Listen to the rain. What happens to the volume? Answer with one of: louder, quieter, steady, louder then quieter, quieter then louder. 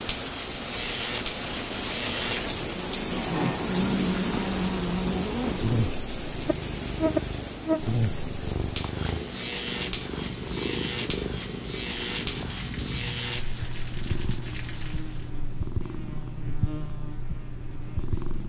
quieter.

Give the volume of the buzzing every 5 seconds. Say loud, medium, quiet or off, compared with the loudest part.
loud, loud, loud, quiet.